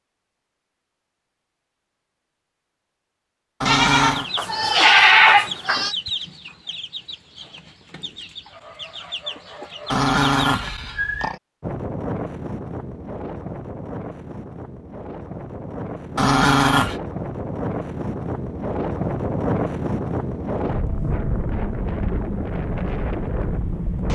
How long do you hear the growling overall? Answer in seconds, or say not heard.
3 s.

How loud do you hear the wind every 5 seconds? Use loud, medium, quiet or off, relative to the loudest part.
off, off, medium, loud, loud.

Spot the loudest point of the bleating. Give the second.
5 s.